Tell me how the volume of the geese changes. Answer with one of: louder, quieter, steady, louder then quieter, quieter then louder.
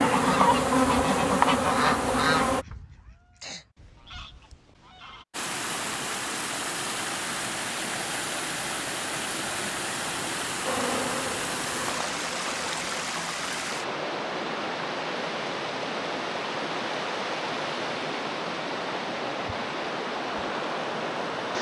quieter.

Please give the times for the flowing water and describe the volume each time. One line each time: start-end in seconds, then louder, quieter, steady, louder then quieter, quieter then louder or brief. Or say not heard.
5.3-21.5 steady.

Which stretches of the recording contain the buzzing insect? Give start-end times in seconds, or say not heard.
0.0-2.6, 10.7-13.0.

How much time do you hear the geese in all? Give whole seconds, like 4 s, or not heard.
5 s.